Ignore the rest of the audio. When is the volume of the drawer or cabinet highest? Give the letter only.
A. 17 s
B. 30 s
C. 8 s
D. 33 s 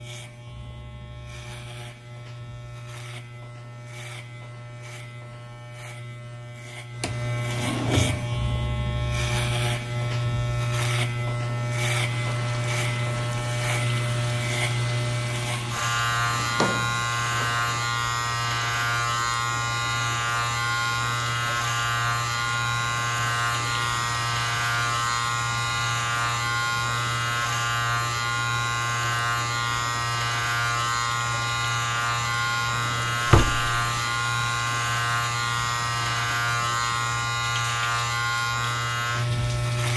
D.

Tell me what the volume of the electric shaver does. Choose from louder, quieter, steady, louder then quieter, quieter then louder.
louder.